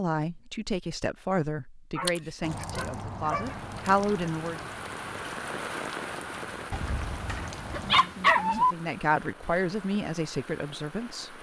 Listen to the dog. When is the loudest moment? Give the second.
8 s.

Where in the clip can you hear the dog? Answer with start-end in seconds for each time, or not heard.
1.9-3.5, 6.7-8.8.